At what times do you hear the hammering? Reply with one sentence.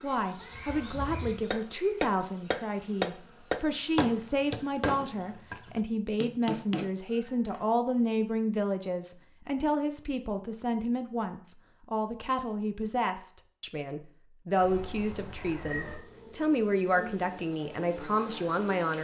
You can hear the hammering from 1.5 to 6.9 s.